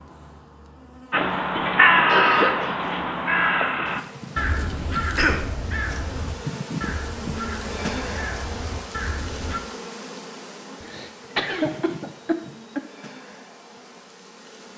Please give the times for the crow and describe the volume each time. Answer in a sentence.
You can hear the crow from 1.1 to 9.6 s, getting quieter.